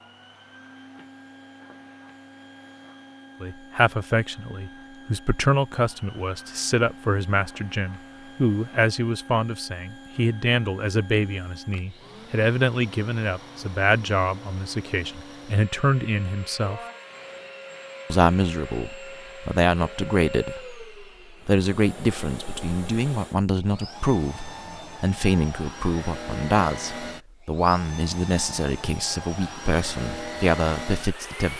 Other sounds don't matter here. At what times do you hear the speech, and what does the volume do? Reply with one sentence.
The speech can be heard from 3.4 to 16.8 s, at a steady volume; and from 18.1 to 31.5 s, at a steady volume.